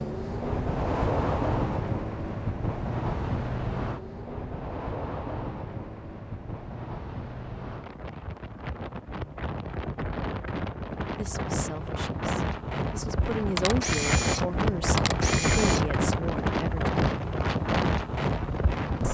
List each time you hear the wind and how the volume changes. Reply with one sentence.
You can hear the wind from 0.0 to 19.0 s, getting quieter then louder.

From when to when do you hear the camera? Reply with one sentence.
The camera can be heard from 13.6 to 15.8 s.